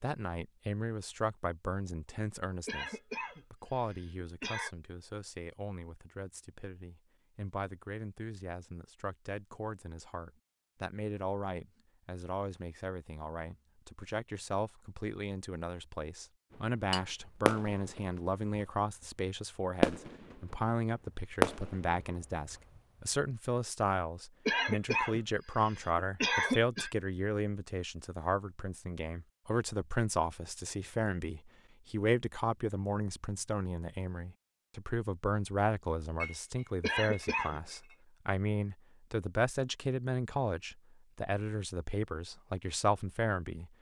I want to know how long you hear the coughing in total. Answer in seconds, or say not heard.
5 s.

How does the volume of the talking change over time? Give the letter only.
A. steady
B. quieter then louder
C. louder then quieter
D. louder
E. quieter
D.